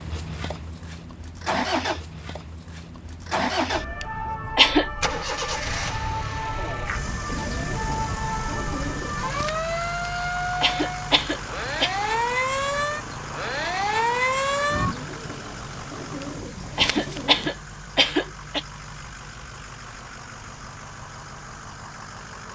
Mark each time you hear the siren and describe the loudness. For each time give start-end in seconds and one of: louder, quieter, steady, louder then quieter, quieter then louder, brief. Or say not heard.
3.7-14.9 louder.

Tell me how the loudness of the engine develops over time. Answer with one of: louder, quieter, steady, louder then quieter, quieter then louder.
quieter.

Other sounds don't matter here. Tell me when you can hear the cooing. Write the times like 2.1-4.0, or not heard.
7.2-9.6, 14.7-17.5.